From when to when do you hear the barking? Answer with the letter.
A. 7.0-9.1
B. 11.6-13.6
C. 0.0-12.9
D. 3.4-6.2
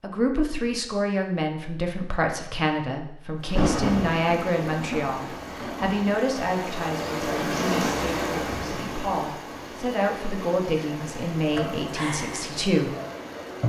B.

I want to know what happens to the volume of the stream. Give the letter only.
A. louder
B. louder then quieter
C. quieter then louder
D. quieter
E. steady
B.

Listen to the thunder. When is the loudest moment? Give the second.
4 s.